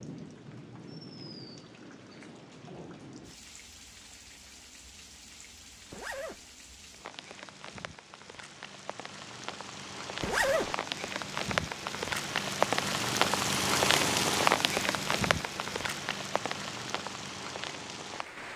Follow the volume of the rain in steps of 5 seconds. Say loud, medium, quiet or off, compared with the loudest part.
quiet, quiet, loud, medium.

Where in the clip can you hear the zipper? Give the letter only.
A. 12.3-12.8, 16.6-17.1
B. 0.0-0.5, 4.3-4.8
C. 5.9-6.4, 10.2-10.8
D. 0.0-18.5
C.